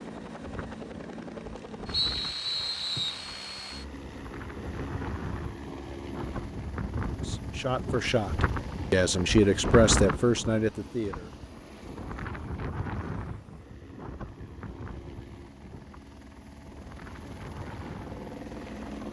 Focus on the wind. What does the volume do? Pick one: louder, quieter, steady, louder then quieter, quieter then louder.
louder then quieter.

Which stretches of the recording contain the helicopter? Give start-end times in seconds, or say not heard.
0.0-19.0.